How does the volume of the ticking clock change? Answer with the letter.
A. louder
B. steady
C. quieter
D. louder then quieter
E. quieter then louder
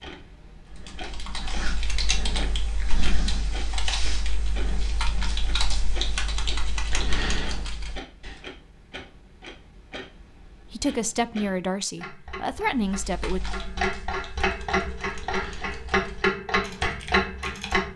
A.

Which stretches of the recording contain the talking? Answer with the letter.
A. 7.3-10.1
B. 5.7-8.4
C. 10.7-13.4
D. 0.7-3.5
C.